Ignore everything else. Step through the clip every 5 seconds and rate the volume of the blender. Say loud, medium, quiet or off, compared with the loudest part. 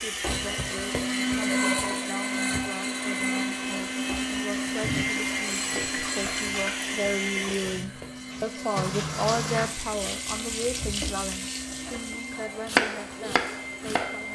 loud, medium, medium.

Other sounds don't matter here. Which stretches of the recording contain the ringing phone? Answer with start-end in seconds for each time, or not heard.
4.8-6.7.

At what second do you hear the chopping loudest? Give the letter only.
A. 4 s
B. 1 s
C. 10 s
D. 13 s
D.